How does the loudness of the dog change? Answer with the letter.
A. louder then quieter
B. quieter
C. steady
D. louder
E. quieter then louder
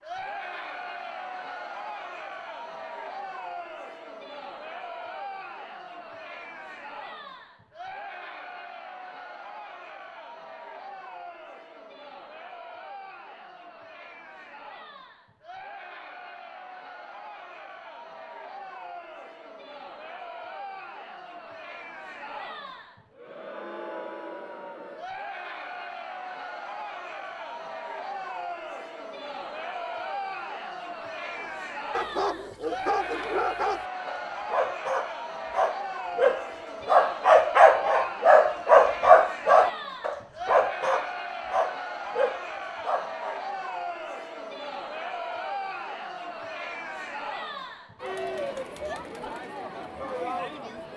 A.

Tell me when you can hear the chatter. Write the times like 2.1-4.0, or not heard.
0.0-50.9.